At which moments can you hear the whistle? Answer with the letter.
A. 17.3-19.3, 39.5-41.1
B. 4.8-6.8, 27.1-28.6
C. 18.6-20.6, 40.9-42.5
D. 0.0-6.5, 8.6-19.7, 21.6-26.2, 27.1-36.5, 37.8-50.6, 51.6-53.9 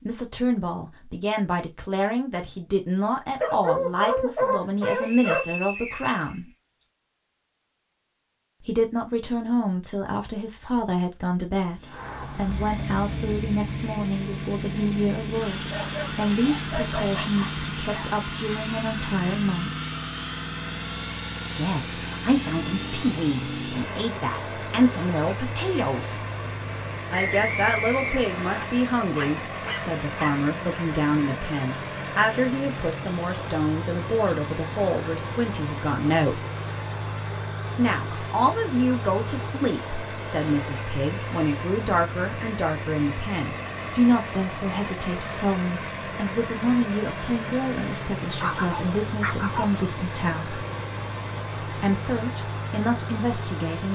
B.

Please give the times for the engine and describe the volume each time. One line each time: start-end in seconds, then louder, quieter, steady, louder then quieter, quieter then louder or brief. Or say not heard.
11.8-53.9 steady.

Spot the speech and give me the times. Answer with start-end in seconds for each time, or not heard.
0.0-6.5, 8.6-19.7, 21.6-26.2, 27.1-36.5, 37.8-50.6, 51.6-53.9.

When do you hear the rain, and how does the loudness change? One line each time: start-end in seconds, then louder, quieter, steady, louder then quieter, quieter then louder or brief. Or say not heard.
not heard.